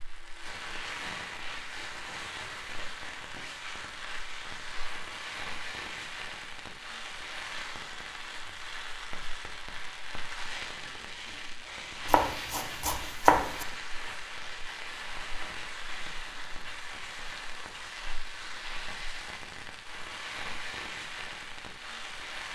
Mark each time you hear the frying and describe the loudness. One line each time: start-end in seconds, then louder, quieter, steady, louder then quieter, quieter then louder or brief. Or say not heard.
0.0-22.5 steady.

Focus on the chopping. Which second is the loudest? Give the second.
13 s.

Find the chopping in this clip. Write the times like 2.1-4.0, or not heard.
12.1-13.7.